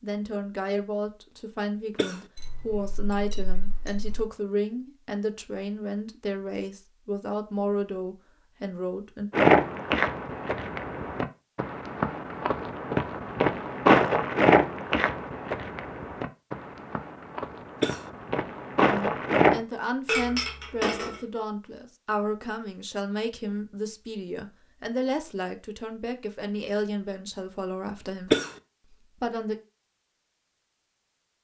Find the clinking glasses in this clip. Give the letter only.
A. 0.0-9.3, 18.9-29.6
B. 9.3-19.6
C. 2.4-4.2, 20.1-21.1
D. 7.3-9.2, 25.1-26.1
C.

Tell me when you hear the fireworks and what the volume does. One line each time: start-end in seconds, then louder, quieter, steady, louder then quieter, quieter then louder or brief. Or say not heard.
not heard.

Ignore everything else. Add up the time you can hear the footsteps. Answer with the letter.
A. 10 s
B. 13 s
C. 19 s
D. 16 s
A.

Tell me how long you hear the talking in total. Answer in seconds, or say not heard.
20 s.